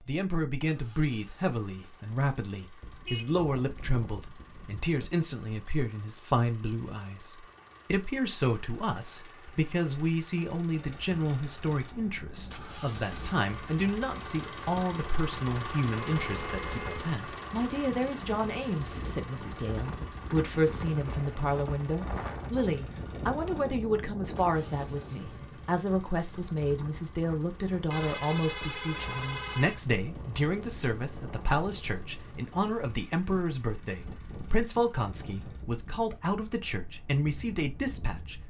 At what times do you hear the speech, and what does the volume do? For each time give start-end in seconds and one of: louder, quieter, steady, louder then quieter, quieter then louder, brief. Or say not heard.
0.1-38.4 steady.